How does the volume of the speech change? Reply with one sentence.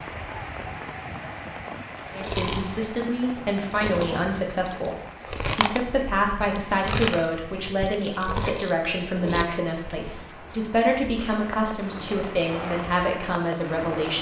The loudness of the speech stays about the same.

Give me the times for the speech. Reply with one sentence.
The speech can be heard from 2.1 to 14.1 s.